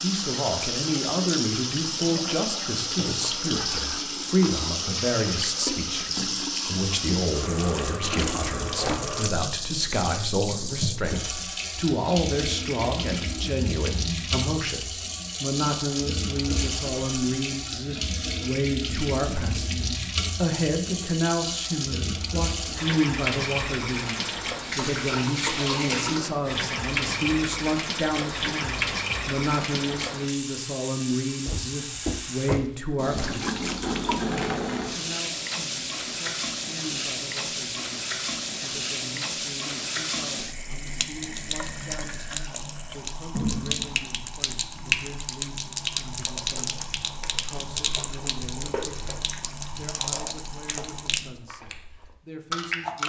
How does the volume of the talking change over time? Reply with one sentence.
The volume of the talking goes down.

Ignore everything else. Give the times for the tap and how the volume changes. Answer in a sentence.
You can hear the tap from 0.0 to 51.4 s, at a steady volume.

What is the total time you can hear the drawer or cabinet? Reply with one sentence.
The drawer or cabinet can be heard for 3 seconds in total.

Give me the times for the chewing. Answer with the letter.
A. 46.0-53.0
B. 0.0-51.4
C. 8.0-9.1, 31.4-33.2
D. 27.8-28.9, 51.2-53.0
A.